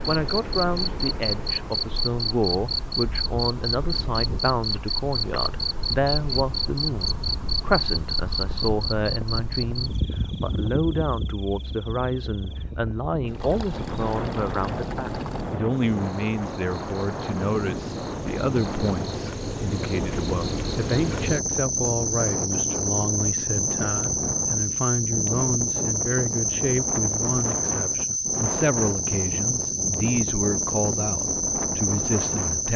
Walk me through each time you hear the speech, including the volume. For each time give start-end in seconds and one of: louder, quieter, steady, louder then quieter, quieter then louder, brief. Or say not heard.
0.1-32.7 steady.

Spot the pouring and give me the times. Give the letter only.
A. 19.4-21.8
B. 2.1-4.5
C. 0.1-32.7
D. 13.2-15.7
D.